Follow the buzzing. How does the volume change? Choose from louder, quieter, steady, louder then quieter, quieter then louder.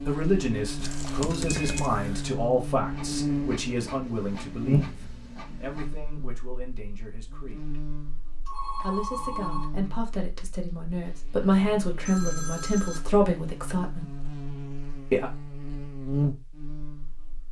quieter then louder.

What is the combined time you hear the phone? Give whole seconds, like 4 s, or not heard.
4 s.